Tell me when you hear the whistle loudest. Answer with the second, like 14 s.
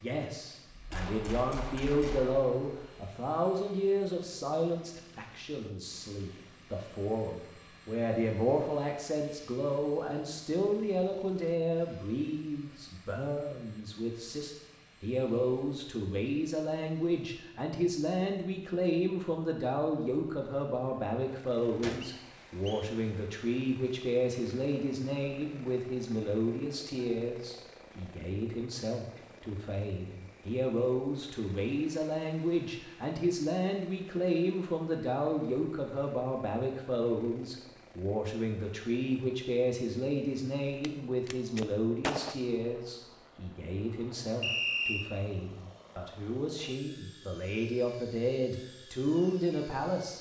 45 s.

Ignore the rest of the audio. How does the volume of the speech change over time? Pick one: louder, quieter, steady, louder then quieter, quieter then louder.
steady.